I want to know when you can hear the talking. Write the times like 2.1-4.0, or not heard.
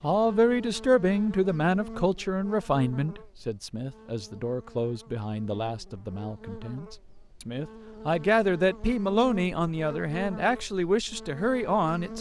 0.0-12.1.